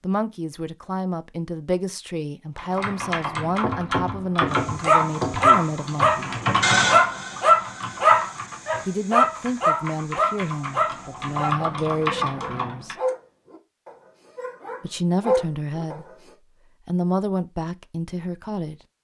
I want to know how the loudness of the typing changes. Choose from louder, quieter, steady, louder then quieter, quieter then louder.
quieter then louder.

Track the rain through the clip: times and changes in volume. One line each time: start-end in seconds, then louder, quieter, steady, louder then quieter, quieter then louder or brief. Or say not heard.
not heard.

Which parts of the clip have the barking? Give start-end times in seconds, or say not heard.
4.8-16.1.